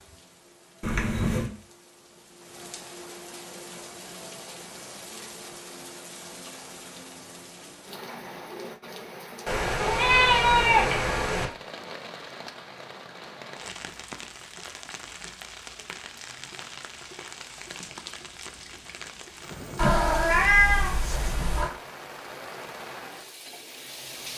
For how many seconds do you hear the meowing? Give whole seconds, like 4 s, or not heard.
5 s.